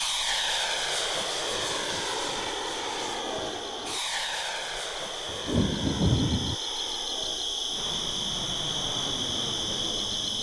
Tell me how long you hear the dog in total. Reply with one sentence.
The dog can't be heard in this clip.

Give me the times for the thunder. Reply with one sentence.
You can hear the thunder from 5.2 to 6.5 s.